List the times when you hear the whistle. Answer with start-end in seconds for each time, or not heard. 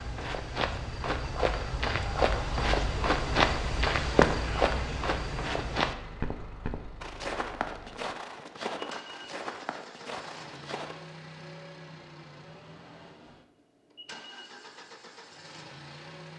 not heard.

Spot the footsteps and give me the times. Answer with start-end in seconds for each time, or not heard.
0.0-10.9.